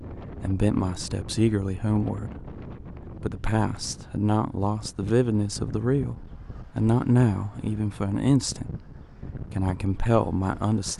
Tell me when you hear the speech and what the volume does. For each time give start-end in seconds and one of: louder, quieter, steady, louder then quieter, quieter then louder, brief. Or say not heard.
0.4-2.3 brief
3.2-8.7 louder then quieter
9.5-10.9 brief.